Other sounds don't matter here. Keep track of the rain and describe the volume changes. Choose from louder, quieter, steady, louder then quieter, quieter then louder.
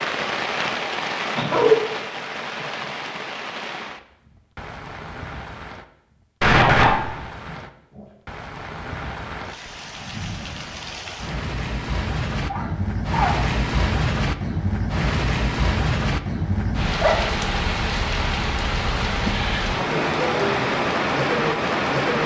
quieter then louder.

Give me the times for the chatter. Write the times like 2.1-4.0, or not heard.
not heard.